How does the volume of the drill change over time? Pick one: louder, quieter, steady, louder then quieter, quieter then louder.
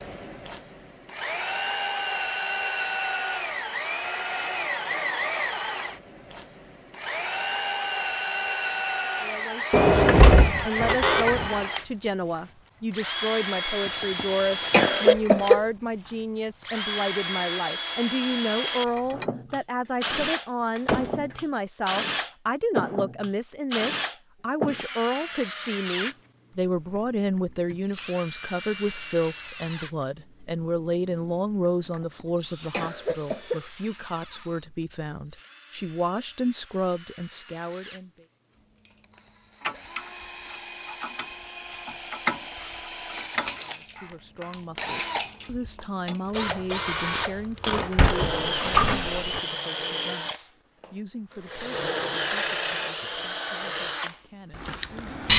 quieter then louder.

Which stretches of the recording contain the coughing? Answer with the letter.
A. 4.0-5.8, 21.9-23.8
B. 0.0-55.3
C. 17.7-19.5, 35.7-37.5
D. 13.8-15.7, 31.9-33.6
D.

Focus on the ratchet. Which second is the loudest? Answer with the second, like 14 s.
42 s.